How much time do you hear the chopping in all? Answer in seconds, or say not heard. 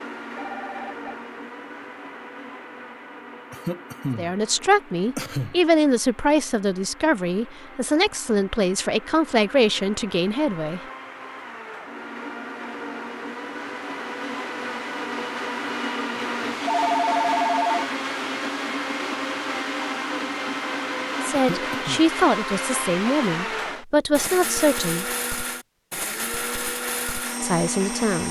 not heard.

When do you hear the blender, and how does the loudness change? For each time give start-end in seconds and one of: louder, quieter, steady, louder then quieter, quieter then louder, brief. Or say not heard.
0.0-28.2 louder.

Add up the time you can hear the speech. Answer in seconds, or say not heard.
11 s.